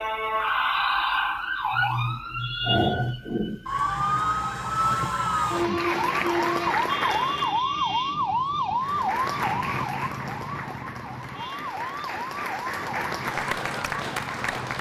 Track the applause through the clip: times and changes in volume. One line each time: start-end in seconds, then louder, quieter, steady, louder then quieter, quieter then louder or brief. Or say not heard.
5.5-7.7 brief
8.8-14.7 quieter then louder.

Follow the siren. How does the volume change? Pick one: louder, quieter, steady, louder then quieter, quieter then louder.
quieter.